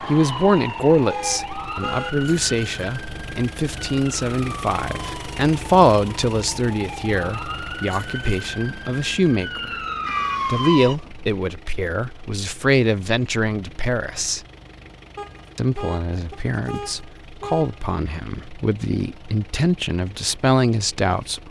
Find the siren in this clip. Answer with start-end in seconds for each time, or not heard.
0.0-10.9.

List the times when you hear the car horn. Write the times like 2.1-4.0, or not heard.
1.1-2.1, 10.1-10.7, 15.2-17.9.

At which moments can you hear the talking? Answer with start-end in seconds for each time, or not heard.
0.1-9.8, 10.4-14.4, 15.6-21.4.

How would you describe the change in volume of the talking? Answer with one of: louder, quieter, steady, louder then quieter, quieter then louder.
steady.